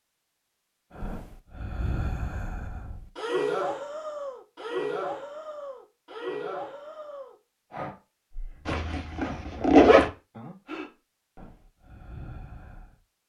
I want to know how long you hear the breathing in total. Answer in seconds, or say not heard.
12 s.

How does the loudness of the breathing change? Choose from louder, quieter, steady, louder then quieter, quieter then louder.
quieter.